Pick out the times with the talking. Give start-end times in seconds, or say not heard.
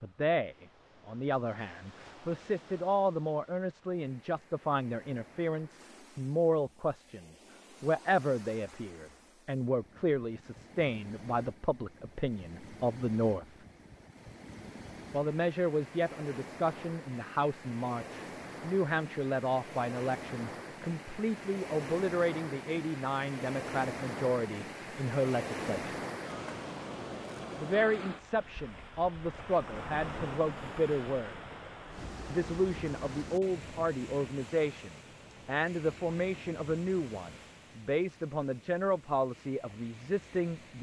0.0-13.6, 15.1-26.0, 27.6-31.4, 32.3-40.7.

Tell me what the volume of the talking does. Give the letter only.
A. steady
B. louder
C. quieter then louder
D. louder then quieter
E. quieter
A.